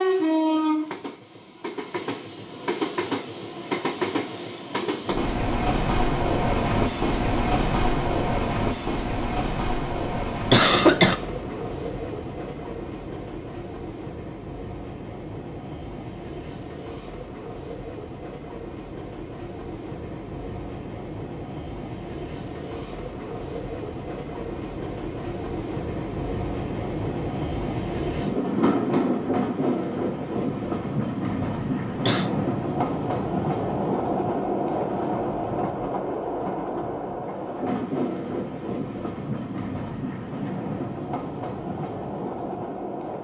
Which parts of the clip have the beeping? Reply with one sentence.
You can't hear the beeping here.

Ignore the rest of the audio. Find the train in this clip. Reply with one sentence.
You can hear the train from 0.0 to 43.1 s.